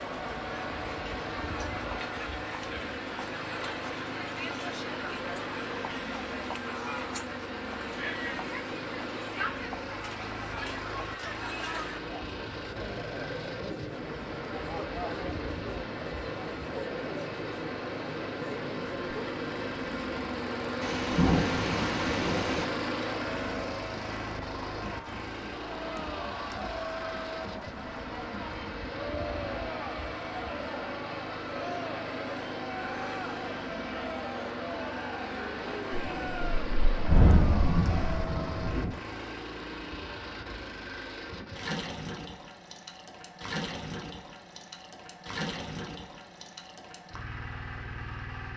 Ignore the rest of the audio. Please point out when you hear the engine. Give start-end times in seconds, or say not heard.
0.0-48.5.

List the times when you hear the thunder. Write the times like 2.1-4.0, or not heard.
20.8-22.6, 36.1-39.0.